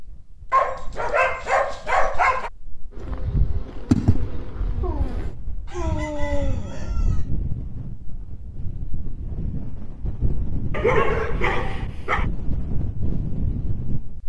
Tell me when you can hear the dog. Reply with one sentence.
You can hear the dog from 0.5 to 2.5 s, from 4.8 to 7.0 s and from 10.7 to 12.2 s.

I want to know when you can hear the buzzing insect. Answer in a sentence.
You can hear the buzzing insect from 3.0 to 5.3 s.